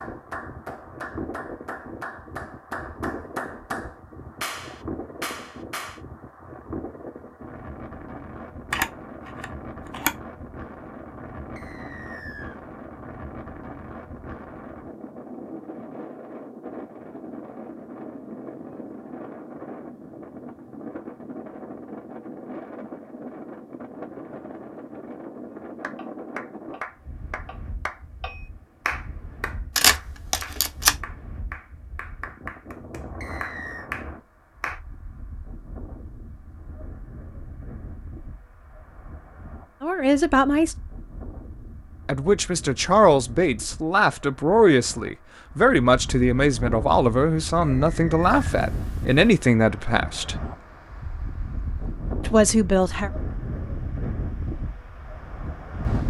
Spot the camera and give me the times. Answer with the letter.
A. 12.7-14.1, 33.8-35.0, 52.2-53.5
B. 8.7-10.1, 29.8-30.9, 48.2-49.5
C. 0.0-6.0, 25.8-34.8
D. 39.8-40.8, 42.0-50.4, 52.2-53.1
B.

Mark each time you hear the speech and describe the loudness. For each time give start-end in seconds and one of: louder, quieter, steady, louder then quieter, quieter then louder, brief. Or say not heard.
39.8-40.8 brief
42.0-50.4 steady
52.2-53.1 brief.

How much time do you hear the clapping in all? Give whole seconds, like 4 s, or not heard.
15 s.